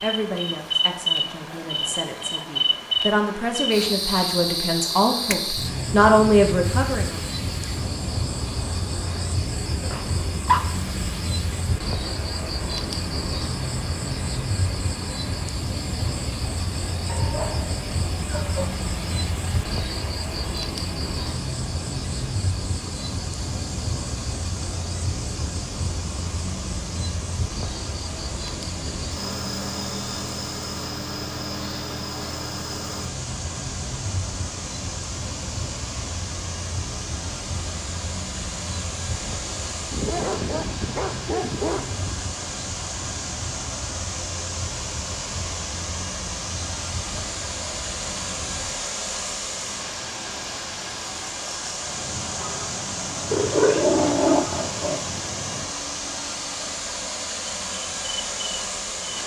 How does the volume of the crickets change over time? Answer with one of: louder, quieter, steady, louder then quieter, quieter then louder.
quieter.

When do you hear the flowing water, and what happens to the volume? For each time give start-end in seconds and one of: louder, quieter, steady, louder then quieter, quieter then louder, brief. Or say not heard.
0.0-59.2 louder.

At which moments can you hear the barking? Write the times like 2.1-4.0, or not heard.
9.8-10.7, 17.1-18.8, 39.9-42.3, 53.3-55.0.